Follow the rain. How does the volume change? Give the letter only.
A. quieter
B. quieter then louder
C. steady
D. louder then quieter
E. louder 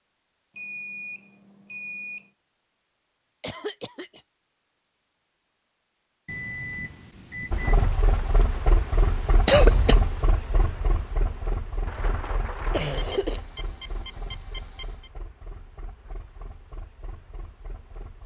A.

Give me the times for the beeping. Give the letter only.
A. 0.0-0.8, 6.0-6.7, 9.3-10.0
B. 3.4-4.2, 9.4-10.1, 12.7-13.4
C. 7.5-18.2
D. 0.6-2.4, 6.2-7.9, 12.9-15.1
D.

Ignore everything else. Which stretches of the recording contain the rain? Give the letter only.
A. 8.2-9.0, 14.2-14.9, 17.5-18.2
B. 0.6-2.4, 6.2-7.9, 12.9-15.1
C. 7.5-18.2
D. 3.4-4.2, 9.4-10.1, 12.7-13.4
C.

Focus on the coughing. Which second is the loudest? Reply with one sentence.
The volume of the coughing peaks at 10 seconds.